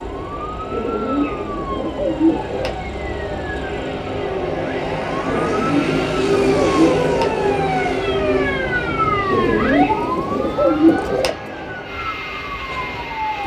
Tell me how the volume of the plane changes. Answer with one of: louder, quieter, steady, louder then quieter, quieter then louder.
louder then quieter.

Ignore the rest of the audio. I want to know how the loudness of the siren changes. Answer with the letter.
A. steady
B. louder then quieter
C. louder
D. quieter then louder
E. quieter
B.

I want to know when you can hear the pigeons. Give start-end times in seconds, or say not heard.
0.7-2.8, 5.2-7.3, 9.3-11.3.